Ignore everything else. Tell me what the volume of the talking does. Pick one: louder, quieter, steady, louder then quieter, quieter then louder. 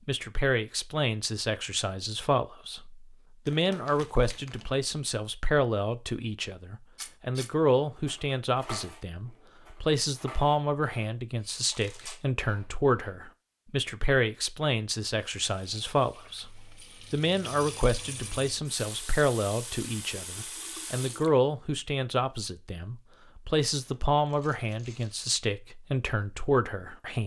steady.